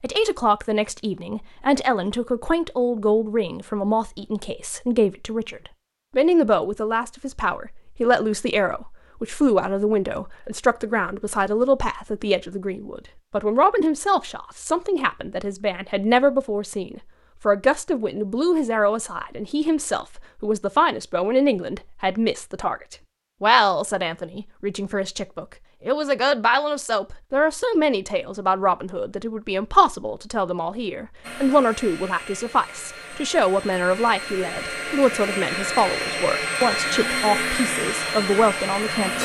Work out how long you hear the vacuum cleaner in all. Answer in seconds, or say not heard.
8 s.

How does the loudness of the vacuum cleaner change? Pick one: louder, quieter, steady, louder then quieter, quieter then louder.
louder.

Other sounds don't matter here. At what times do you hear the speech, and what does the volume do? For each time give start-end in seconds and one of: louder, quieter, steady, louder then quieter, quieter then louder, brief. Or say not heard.
0.0-39.2 steady.